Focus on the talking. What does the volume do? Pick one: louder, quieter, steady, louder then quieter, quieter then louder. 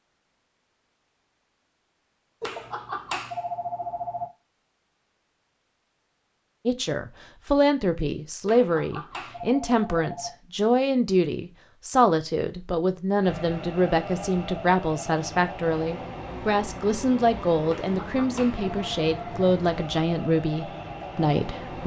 steady.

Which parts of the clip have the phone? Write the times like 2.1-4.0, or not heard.
2.4-4.3, 8.4-10.3, 17.6-19.3.